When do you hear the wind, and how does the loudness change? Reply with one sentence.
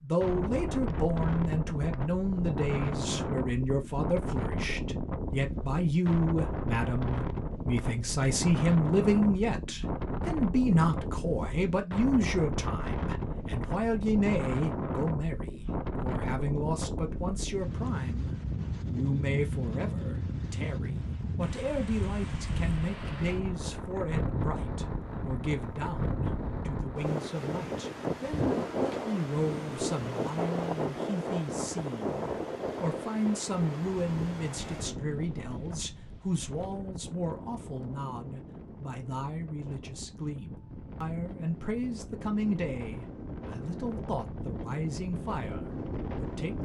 You can hear the wind from 0.2 to 46.5 s, getting quieter.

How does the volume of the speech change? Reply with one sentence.
The loudness of the speech goes down.